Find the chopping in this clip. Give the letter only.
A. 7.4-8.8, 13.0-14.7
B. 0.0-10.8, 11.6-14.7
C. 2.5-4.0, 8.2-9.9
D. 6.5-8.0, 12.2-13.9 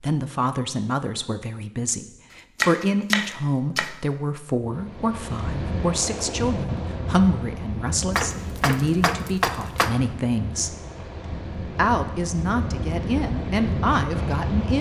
C.